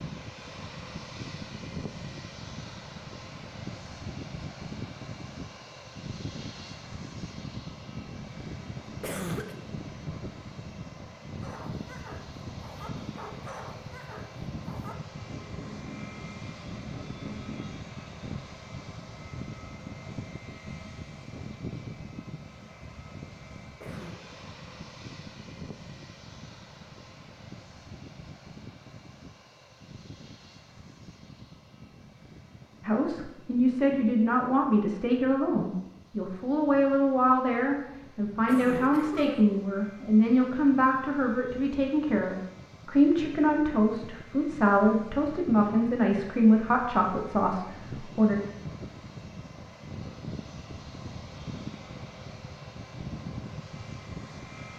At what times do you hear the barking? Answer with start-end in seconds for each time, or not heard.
11.4-17.8.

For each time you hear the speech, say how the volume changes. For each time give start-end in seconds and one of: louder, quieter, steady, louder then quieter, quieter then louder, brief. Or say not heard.
32.9-48.4 steady.